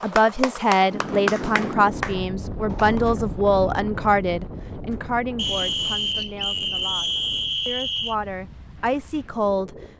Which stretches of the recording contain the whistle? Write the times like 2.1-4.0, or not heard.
5.3-8.2.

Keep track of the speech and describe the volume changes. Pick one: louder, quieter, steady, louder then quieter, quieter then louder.
quieter then louder.